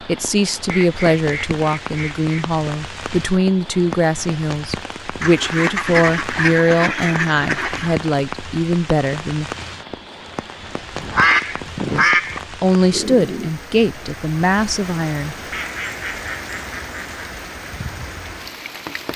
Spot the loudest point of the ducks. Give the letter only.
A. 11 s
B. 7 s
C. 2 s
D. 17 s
A.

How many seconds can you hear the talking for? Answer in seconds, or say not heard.
13 s.